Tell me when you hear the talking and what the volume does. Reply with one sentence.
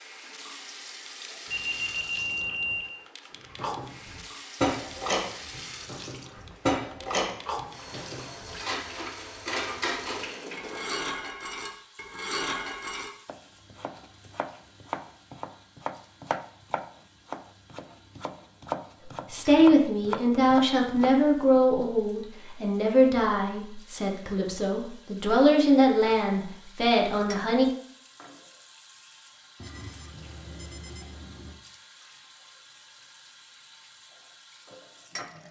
The talking can be heard from 19.3 to 27.6 s, at a steady volume.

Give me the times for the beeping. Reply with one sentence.
You can hear the beeping from 1.5 to 3.0 s and from 29.6 to 31.6 s.